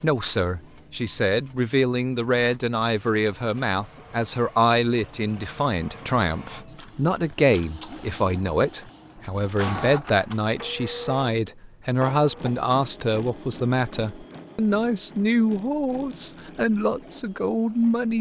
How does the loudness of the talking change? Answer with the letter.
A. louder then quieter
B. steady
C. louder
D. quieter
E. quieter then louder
B.